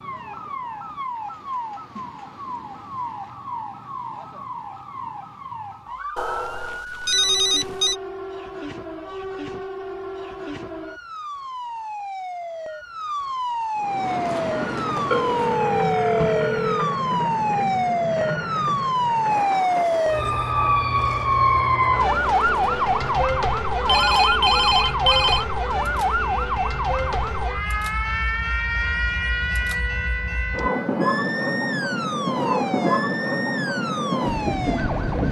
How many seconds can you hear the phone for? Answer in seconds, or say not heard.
5 s.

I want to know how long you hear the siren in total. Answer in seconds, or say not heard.
35 s.